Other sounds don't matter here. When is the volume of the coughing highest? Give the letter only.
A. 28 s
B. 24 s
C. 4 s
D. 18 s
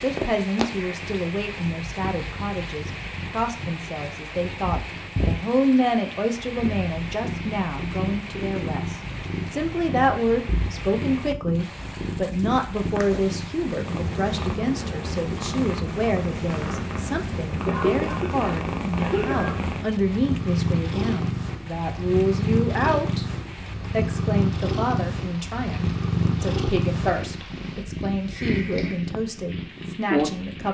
D.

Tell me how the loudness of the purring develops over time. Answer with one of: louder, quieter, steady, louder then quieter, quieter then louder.
louder.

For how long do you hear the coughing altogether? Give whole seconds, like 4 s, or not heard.
2 s.